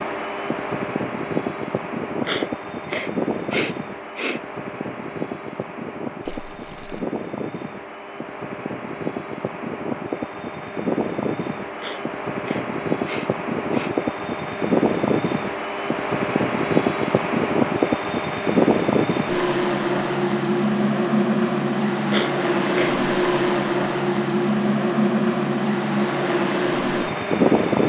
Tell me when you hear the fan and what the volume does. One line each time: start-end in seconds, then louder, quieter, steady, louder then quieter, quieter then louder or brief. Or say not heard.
0.0-27.8 louder.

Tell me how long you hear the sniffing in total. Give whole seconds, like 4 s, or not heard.
5 s.